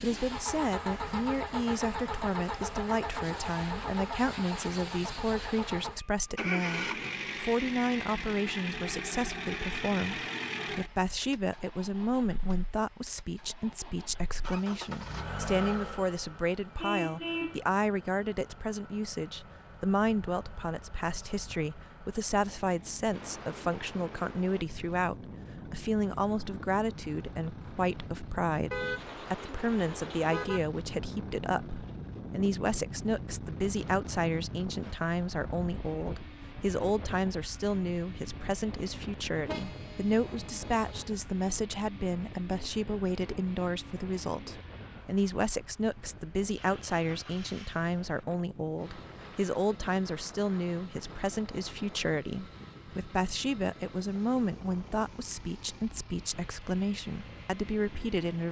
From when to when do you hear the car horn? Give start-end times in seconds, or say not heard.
16.8-17.6, 28.7-30.6, 39.5-41.1.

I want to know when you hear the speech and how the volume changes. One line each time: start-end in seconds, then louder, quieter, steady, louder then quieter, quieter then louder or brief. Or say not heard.
0.0-58.4 steady.